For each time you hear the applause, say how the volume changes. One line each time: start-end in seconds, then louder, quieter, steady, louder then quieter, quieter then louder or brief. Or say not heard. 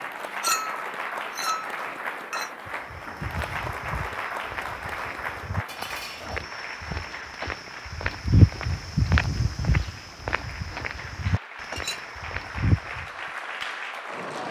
0.0-14.4 quieter then louder.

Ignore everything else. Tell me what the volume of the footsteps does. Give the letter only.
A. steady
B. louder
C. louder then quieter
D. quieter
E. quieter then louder
C.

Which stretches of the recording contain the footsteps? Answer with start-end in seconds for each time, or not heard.
2.6-13.1.